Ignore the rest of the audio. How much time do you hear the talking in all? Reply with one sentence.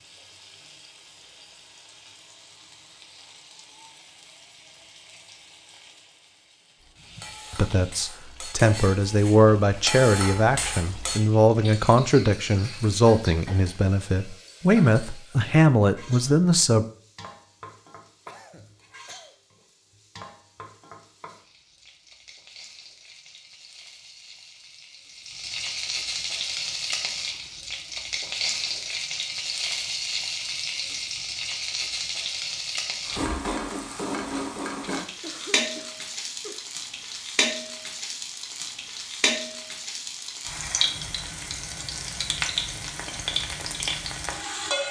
The talking can be heard for 9 seconds in total.